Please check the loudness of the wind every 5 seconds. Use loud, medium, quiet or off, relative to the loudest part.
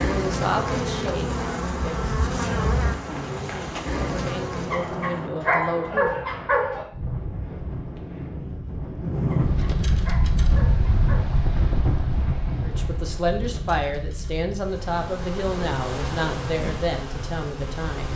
off, loud, loud, medium.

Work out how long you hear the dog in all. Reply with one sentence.
The dog can be heard for 4 seconds in total.